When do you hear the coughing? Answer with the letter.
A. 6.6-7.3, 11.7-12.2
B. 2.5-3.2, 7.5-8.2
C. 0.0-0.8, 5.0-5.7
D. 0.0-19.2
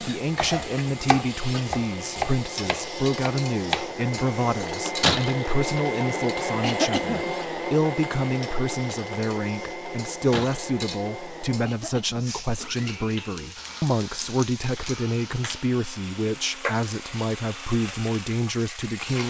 A.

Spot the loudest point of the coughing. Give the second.
7 s.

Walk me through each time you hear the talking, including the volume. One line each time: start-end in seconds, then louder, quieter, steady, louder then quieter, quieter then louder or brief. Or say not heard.
0.0-19.2 steady.